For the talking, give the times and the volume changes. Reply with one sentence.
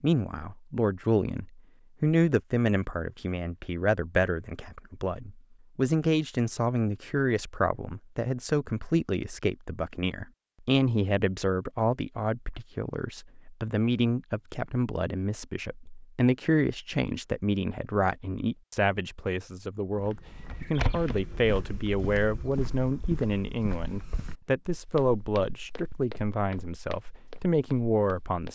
The talking can be heard from 0.0 to 28.5 s, at a steady volume.